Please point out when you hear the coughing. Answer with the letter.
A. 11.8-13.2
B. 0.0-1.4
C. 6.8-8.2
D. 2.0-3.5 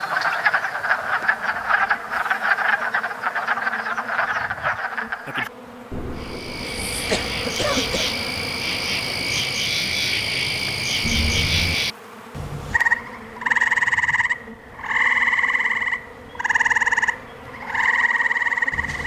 C.